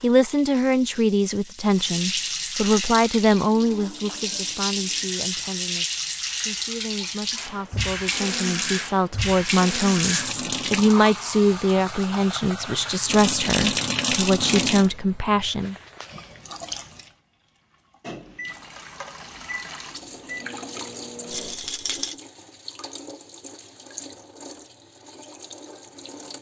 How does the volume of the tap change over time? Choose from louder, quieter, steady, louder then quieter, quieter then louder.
quieter.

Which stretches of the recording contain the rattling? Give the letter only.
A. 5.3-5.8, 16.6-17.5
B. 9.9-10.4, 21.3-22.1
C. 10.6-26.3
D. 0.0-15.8
B.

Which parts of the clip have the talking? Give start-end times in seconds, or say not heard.
0.0-15.8.